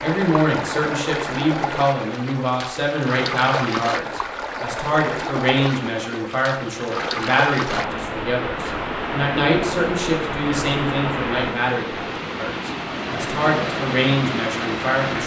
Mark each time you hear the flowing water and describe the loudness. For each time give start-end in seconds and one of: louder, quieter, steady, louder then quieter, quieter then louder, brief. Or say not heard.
0.0-15.2 steady.